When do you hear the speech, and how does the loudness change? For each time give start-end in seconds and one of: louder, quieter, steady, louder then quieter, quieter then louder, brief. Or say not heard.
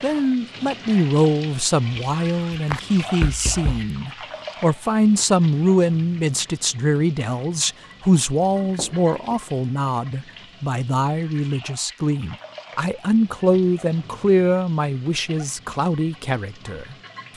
0.0-17.3 steady.